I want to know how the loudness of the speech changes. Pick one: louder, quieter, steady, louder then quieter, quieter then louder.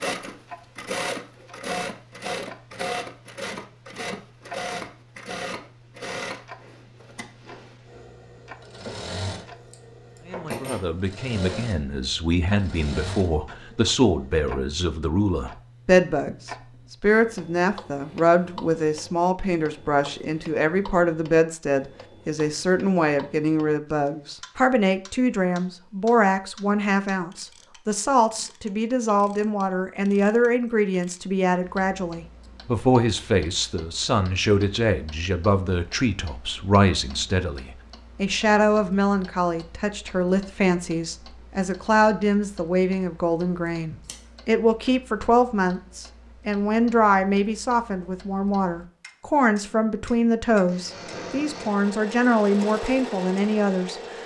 steady.